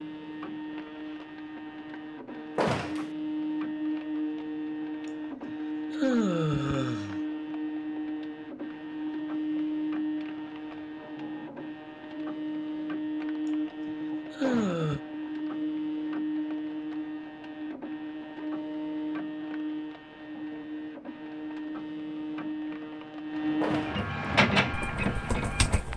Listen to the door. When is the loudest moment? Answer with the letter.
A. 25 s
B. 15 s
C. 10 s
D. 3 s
D.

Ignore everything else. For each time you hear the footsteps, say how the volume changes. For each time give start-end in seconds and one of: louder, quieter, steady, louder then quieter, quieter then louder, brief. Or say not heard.
not heard.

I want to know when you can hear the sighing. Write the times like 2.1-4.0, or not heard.
5.0-7.2, 13.4-15.0.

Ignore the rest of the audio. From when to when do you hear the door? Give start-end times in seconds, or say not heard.
2.5-3.1, 14.4-14.9, 23.6-24.1.